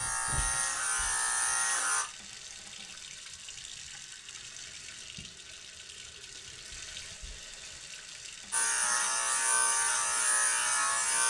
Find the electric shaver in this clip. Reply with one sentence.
The electric shaver can be heard from 0.0 to 2.0 s and from 8.5 to 11.2 s.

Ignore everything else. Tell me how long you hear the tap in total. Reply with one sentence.
You can hear the tap for 11 seconds altogether.